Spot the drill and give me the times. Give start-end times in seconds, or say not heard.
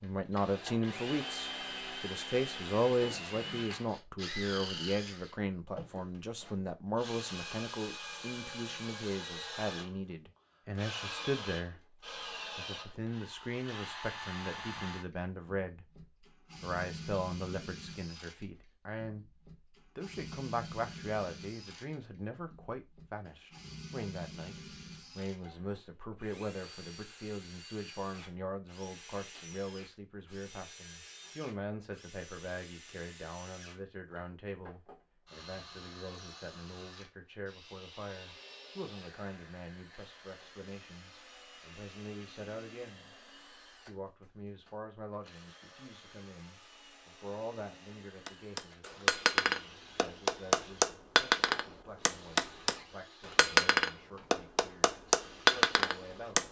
0.0-56.4.